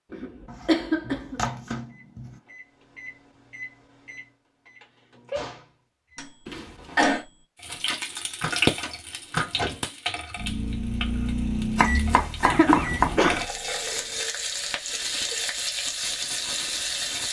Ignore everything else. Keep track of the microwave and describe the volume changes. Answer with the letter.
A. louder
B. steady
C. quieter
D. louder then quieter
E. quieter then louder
A.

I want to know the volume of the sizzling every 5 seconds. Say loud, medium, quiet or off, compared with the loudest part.
off, loud, medium, loud.